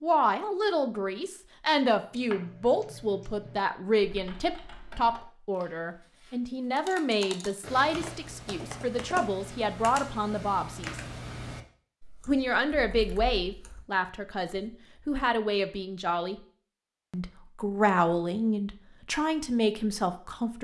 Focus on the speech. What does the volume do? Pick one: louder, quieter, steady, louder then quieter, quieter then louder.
steady.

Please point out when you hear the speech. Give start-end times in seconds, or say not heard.
0.0-10.9, 12.2-16.4, 17.1-20.5.